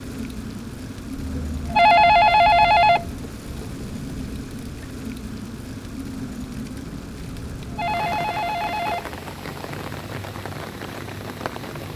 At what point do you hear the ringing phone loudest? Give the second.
2 s.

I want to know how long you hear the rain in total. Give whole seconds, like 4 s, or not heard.
12 s.